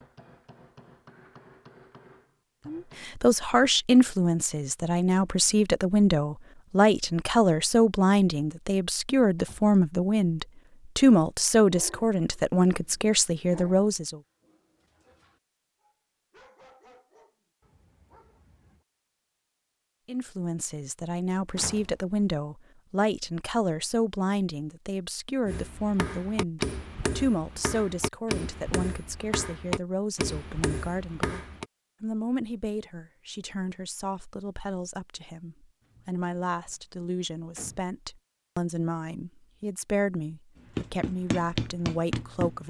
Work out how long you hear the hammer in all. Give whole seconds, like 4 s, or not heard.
11 s.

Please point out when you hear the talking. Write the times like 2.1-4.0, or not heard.
2.6-14.2, 20.1-42.6.